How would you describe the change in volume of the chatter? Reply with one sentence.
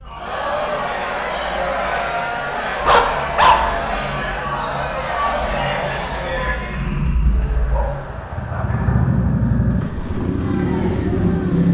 The loudness of the chatter goes down.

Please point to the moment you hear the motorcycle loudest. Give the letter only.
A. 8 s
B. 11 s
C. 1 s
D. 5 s
B.